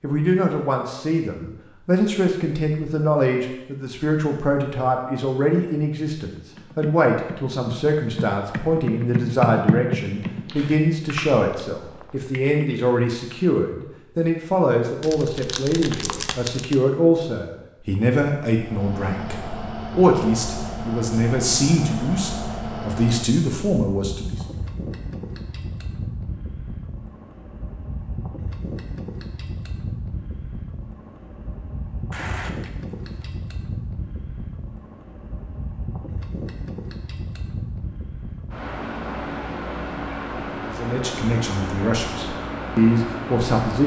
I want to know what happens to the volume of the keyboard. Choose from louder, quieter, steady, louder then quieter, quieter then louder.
louder then quieter.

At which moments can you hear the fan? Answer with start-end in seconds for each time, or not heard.
18.5-43.8.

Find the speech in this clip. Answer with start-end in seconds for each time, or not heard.
0.0-24.4, 40.6-43.8.